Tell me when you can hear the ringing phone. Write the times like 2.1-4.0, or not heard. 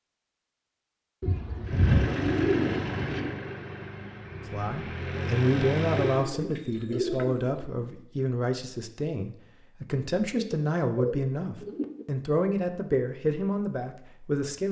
not heard.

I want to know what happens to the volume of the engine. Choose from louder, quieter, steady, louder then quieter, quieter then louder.
quieter then louder.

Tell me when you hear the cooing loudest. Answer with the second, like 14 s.
2 s.